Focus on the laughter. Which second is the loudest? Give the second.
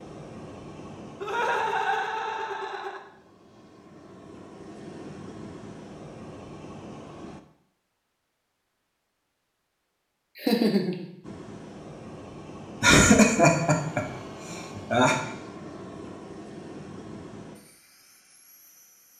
13 s.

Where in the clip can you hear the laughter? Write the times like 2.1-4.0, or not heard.
1.2-3.0, 10.3-11.1, 12.8-15.2.